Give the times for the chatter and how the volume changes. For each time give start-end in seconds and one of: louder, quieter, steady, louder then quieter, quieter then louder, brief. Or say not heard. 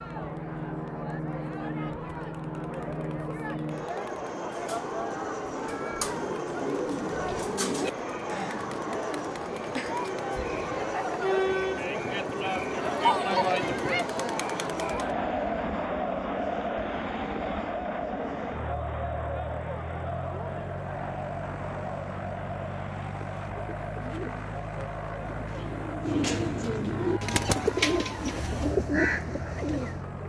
0.0-30.2 louder then quieter.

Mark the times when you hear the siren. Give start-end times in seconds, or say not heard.
not heard.